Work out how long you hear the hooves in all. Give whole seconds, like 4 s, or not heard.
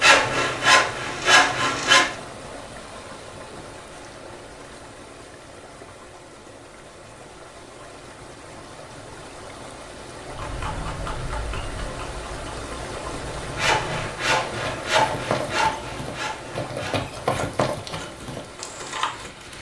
9 s.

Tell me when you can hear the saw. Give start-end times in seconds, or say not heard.
0.0-2.1, 13.4-19.5.